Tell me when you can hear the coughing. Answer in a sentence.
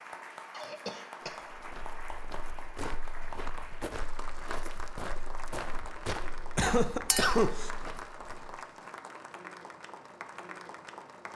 You can hear the coughing from 0.5 to 1.4 s and from 6.5 to 7.7 s.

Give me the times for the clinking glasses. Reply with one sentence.
The clinking glasses can be heard from 7.0 to 7.5 s.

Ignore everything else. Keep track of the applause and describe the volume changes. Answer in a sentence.
The loudness of the applause stays about the same.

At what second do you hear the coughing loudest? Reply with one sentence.
The volume of the coughing peaks at 7 seconds.